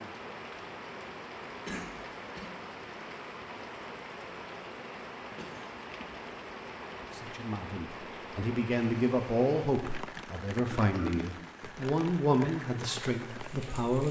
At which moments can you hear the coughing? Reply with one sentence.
The coughing can be heard from 1.6 to 2.5 s, from 5.3 to 6.2 s and from 10.8 to 11.2 s.